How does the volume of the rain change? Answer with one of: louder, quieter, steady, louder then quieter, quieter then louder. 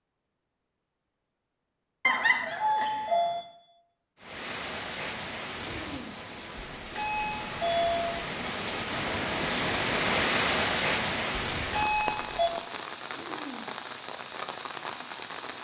louder then quieter.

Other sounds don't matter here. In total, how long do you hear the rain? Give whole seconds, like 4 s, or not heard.
11 s.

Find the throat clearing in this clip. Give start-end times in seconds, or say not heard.
5.6-6.2, 13.1-13.8.